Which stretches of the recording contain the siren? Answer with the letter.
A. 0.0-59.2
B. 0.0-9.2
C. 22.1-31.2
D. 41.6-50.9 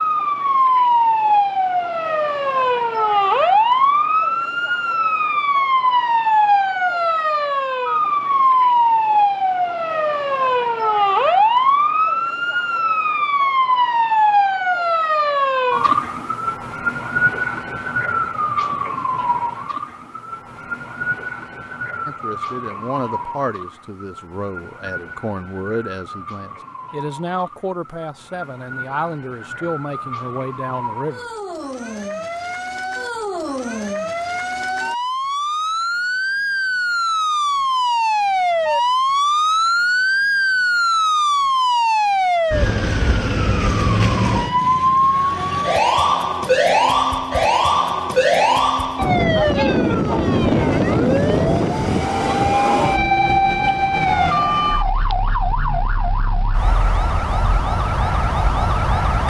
A.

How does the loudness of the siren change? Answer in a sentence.
The loudness of the siren goes down, then up.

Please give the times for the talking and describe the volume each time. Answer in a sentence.
You can hear the talking from 22.1 to 31.2 s, at a steady volume.